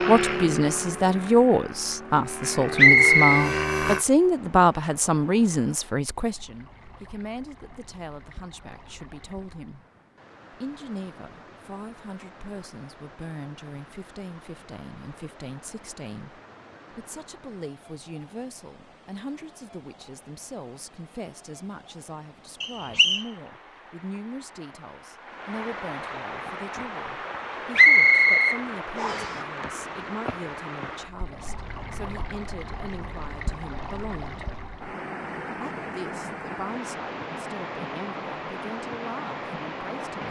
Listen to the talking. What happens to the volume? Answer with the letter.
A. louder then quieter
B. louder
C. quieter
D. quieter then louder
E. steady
C.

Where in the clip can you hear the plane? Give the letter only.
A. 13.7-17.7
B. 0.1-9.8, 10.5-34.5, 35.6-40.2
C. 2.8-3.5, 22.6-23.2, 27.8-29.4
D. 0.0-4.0
D.